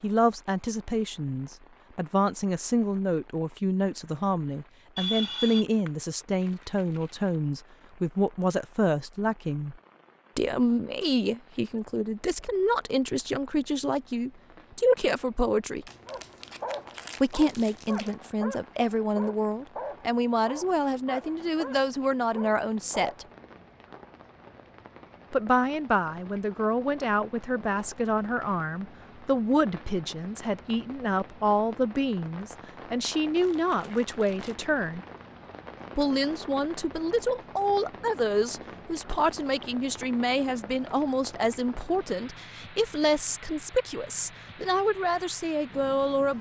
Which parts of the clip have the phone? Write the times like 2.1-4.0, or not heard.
5.0-5.7.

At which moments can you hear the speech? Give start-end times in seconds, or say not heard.
0.0-9.8, 10.3-15.8, 17.2-23.2, 25.3-35.0, 36.0-46.3.